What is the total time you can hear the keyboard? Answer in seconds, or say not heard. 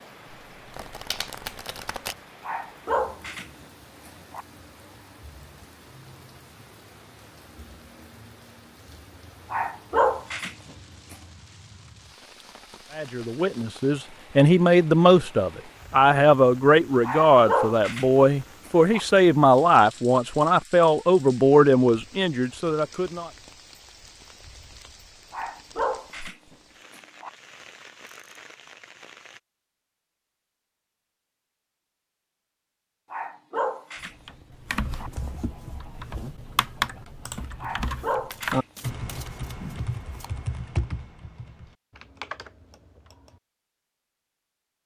9 s.